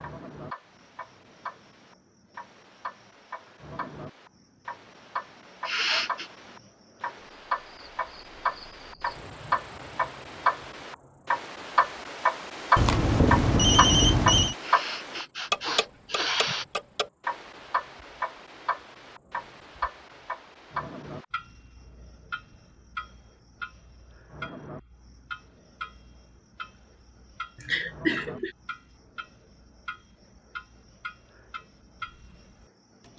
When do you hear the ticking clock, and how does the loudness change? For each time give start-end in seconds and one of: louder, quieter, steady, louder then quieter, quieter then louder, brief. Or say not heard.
0.0-33.1 louder then quieter.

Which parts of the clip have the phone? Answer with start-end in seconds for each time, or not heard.
12.8-14.6.